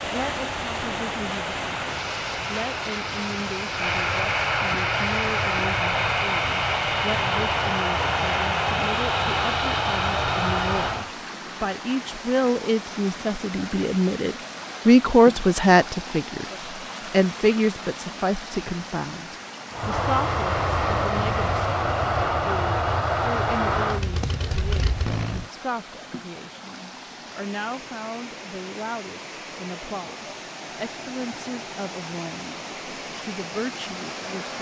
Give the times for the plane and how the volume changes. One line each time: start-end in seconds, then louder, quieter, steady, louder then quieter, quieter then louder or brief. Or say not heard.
0.0-11.1 louder
19.7-25.5 quieter.